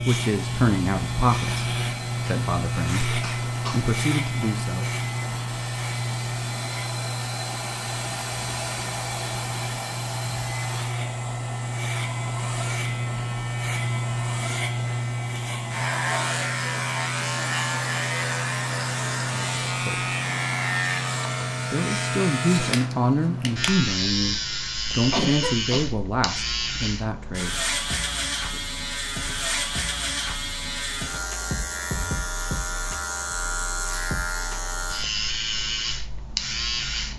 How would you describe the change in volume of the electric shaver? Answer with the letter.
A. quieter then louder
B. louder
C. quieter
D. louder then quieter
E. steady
E.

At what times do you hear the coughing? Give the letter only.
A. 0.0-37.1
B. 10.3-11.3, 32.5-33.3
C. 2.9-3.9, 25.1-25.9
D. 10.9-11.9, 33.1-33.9
C.